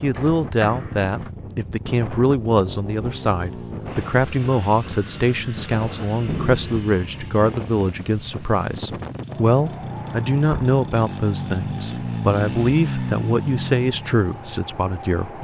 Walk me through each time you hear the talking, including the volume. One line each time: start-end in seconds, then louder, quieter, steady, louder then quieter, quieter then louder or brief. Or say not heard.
0.0-15.3 steady.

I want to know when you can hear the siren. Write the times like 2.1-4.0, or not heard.
not heard.